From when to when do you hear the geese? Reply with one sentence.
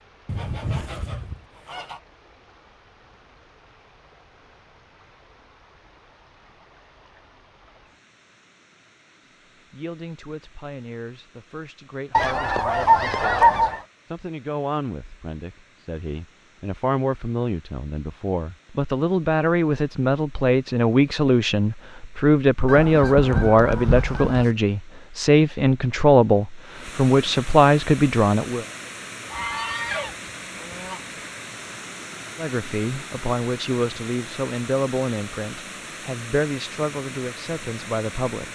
The geese can be heard from 0.2 to 2.0 s, from 12.1 to 13.8 s, from 22.6 to 24.5 s and from 29.3 to 31.0 s.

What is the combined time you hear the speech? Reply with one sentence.
You can hear the speech for 25 seconds altogether.